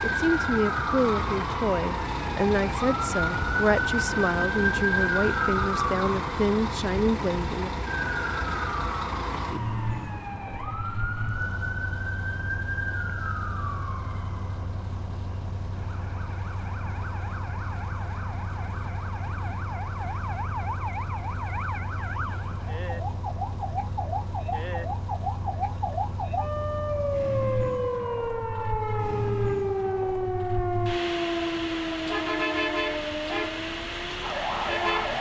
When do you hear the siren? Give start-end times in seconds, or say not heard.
0.0-35.1.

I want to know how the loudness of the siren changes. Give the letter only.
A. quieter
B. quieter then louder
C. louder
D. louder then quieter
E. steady
B.